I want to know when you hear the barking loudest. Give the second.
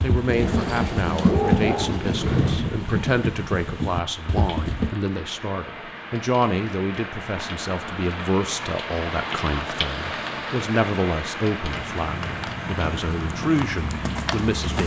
1 s.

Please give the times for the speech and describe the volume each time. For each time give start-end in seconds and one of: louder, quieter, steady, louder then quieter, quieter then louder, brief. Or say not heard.
0.0-14.8 steady.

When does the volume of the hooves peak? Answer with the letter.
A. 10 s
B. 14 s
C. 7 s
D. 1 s
D.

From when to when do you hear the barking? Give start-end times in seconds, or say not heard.
0.2-2.6.